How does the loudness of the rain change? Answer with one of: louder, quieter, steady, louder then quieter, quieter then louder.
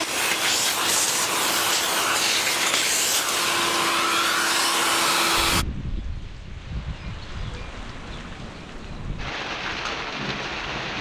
quieter then louder.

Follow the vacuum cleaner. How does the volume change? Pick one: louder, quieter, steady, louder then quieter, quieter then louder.
steady.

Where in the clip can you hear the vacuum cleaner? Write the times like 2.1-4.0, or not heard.
0.0-5.7.